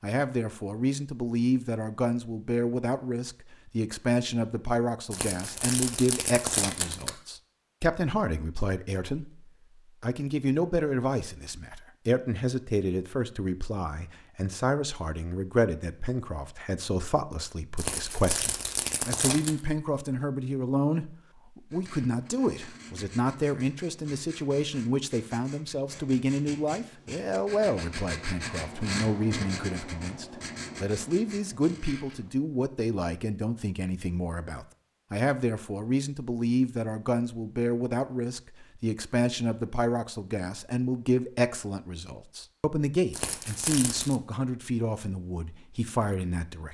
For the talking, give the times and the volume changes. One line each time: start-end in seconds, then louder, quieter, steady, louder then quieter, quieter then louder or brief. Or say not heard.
0.0-46.6 steady.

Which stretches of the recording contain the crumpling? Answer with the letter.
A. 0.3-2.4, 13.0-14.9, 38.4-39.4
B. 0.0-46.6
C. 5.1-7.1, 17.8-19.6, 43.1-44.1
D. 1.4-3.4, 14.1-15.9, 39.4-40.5
C.